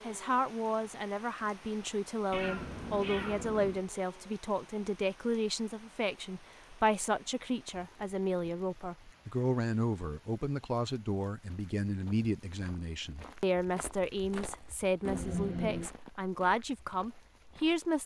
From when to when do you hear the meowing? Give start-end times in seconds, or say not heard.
2.3-3.9, 15.1-15.9.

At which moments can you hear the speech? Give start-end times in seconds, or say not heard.
0.0-18.0.